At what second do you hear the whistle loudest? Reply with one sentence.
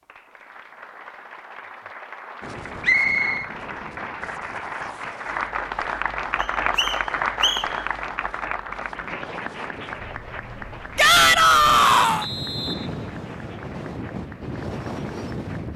The loudest moment of the whistle is at 3 seconds.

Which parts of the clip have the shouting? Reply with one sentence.
The shouting can be heard from 10.9 to 12.2 s.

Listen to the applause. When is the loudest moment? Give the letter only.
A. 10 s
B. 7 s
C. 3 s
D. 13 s
B.